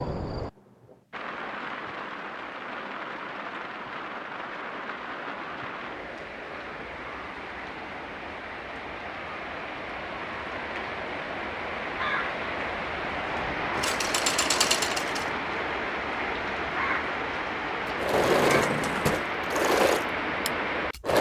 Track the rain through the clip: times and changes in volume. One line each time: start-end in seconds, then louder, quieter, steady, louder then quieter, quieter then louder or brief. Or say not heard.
0.0-21.1 louder.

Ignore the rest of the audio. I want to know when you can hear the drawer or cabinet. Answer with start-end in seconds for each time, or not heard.
18.1-19.2.